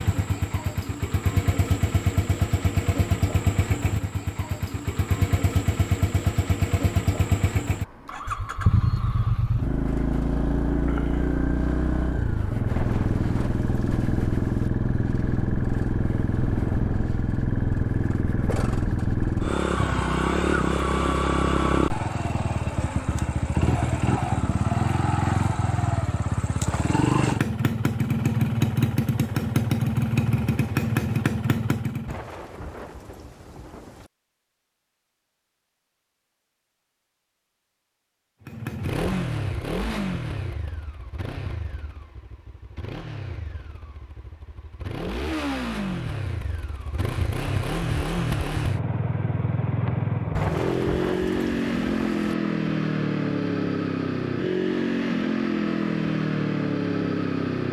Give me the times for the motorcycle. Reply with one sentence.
You can hear the motorcycle from 0.0 to 32.2 s and from 38.5 to 57.6 s.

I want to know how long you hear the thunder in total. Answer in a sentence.
The thunder can be heard for 6 seconds in total.